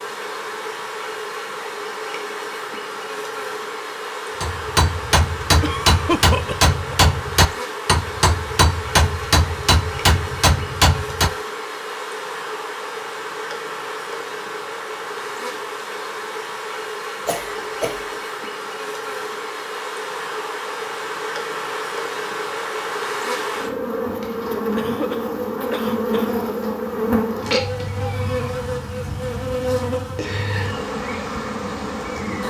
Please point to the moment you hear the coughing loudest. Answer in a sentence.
The loudest moment of the coughing is at 6 seconds.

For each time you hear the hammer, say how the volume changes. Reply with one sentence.
The hammer can be heard from 4.4 to 11.3 s, at a steady volume.